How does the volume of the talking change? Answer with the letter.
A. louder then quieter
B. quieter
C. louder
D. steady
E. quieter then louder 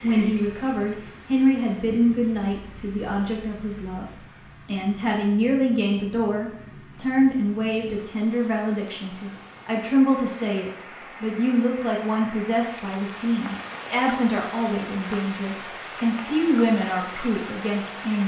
D.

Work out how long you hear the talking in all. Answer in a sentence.
The talking can be heard for 18 seconds in total.